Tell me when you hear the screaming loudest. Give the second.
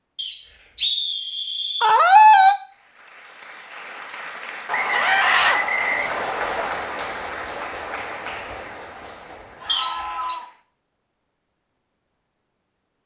2 s.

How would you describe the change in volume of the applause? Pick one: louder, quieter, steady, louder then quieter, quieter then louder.
louder then quieter.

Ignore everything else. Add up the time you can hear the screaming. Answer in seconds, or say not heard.
2 s.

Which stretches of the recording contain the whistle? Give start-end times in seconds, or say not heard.
0.1-1.9, 4.7-6.7, 9.7-10.3.